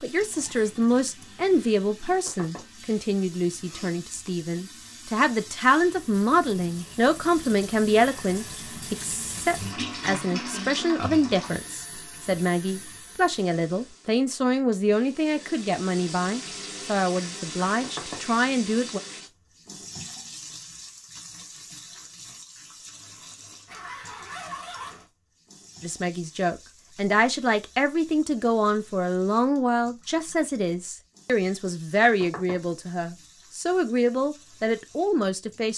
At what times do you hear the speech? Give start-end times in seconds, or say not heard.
0.0-19.0, 25.8-35.7.